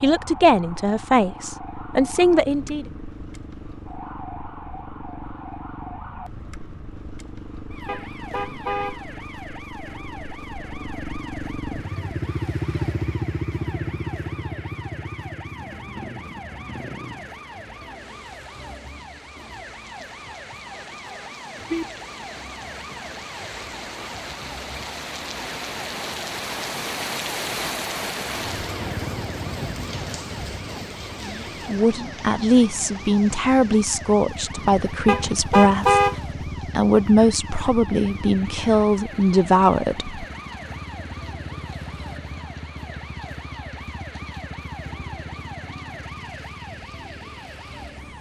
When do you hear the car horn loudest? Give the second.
36 s.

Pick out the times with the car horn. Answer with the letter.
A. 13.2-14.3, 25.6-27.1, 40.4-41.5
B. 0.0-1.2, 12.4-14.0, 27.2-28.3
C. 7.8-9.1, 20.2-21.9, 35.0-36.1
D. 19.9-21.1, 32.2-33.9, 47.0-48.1
C.